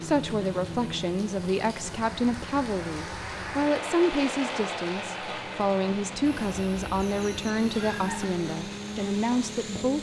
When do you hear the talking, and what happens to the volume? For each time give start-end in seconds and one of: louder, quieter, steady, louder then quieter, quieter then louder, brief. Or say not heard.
0.0-9.9 steady.